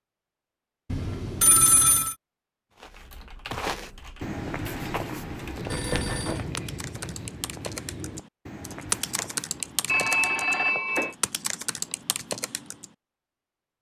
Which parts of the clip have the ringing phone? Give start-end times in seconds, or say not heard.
0.9-2.1, 5.7-6.5, 9.8-11.2.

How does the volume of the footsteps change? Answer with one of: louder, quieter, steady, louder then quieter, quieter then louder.
quieter.